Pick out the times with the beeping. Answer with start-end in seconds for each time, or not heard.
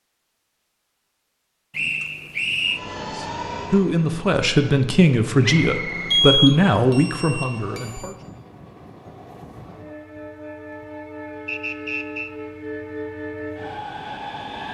6.1-8.1.